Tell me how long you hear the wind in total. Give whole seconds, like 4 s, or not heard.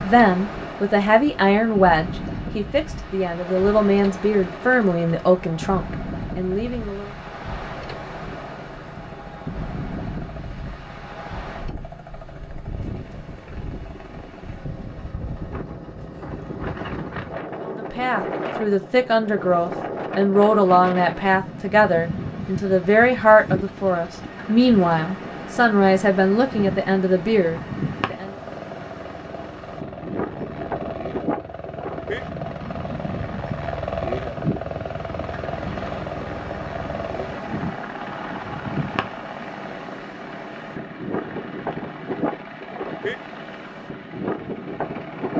45 s.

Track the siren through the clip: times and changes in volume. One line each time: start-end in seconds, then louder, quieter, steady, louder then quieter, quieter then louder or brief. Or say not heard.
not heard.